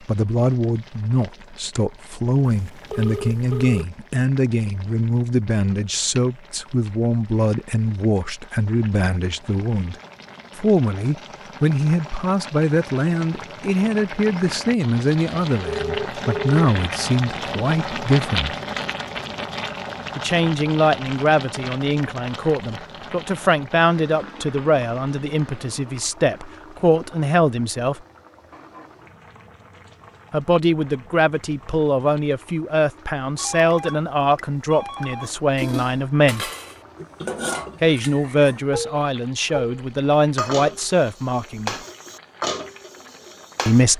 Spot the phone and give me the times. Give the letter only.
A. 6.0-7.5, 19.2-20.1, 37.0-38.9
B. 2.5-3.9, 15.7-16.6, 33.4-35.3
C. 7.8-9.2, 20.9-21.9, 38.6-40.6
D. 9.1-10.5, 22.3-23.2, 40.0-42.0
B.